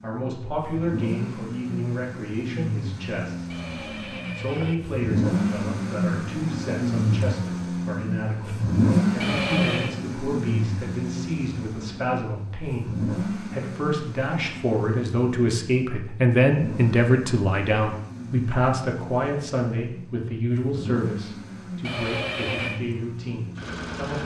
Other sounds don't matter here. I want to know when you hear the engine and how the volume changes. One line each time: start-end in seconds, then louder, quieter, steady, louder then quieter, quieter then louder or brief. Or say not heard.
0.0-24.2 louder then quieter.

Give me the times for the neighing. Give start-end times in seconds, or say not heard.
3.5-4.8, 9.2-9.9, 21.8-22.8.